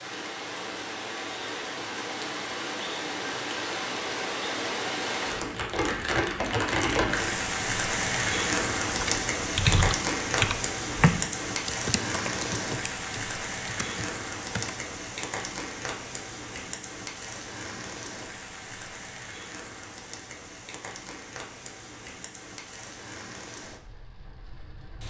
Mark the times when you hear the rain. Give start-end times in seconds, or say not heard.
0.0-25.0.